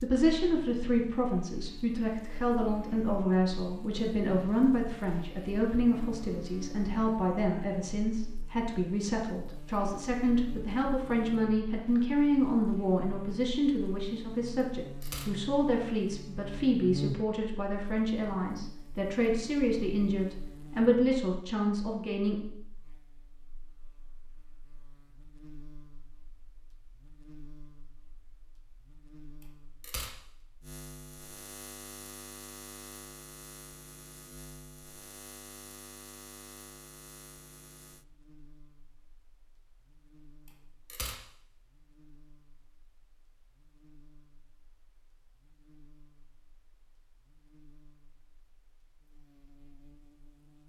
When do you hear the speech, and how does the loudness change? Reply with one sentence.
The speech can be heard from 0.0 to 22.4 s, at a steady volume.